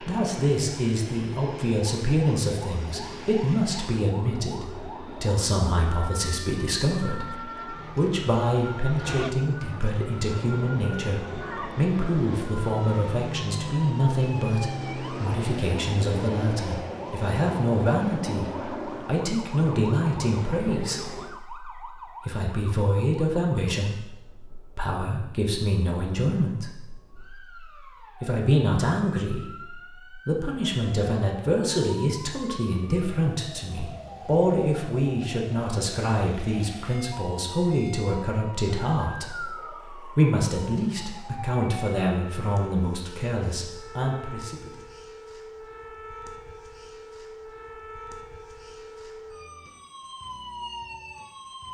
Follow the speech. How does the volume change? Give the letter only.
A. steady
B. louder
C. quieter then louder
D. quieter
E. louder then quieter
A.